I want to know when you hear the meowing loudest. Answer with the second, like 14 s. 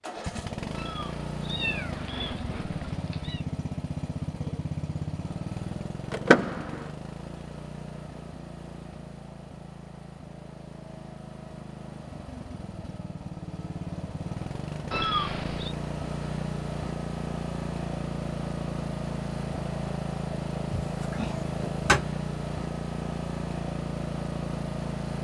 15 s.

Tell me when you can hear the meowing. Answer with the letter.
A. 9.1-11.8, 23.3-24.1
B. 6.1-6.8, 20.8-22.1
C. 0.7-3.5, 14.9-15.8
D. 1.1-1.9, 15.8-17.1
C.